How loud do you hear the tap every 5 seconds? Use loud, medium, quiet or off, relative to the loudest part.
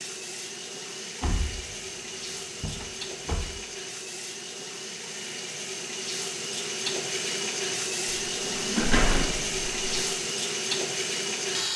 medium, loud, loud.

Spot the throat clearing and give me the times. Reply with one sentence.
The throat clearing can be heard from 8.8 to 9.4 s.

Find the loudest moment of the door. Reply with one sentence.
The loudest moment of the door is at 9 seconds.